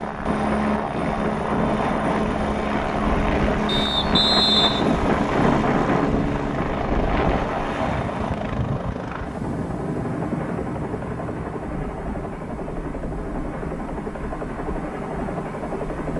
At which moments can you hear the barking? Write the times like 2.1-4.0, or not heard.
not heard.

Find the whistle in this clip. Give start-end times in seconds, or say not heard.
3.6-5.0.